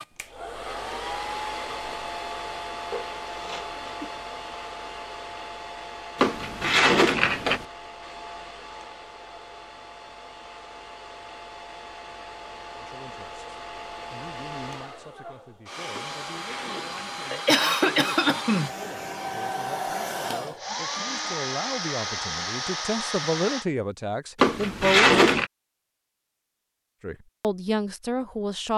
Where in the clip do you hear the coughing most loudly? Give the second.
18 s.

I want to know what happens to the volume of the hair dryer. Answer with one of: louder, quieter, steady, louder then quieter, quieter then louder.
quieter then louder.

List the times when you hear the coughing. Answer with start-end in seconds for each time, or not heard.
2.9-4.0, 17.3-18.7.